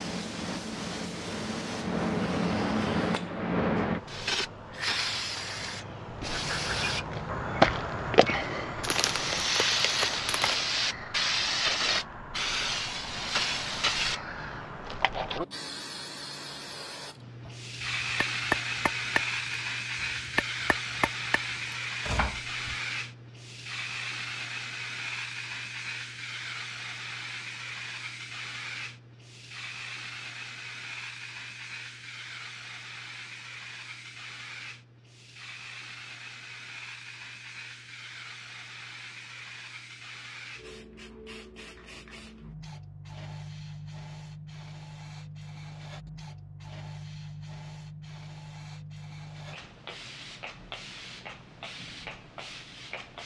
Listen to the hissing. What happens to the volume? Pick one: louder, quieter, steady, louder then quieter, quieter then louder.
quieter.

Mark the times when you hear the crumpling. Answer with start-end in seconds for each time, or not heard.
8.8-10.7.